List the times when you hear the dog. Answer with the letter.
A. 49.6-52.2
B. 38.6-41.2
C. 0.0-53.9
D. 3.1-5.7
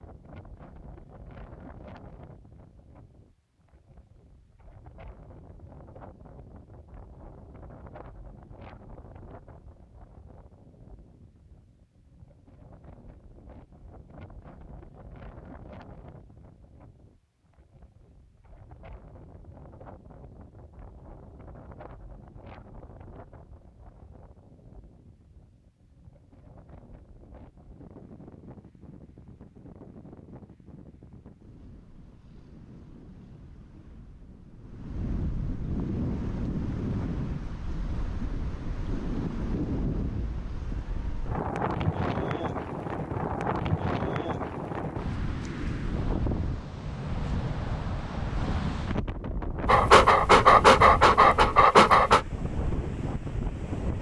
A.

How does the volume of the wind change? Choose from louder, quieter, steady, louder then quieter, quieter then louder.
louder.